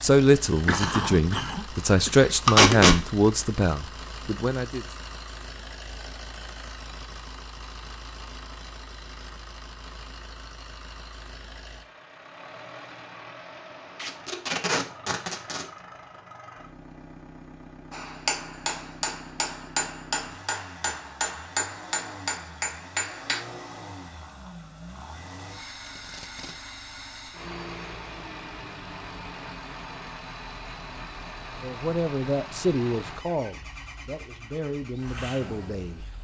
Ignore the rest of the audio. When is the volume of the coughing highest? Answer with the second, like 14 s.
1 s.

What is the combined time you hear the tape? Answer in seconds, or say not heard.
3 s.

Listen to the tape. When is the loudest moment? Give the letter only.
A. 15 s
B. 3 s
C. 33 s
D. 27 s
B.